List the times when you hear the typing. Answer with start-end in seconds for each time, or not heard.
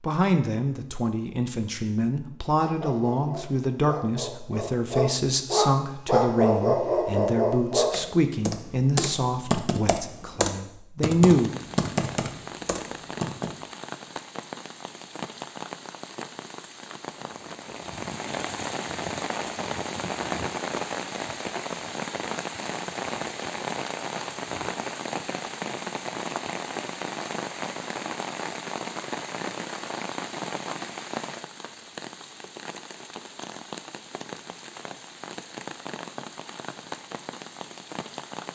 7.9-13.6.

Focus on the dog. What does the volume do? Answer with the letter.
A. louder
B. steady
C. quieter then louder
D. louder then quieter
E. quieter
A.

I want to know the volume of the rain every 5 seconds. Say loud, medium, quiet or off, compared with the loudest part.
off, off, medium, loud, loud, loud, medium, medium.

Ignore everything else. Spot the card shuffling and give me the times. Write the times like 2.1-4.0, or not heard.
not heard.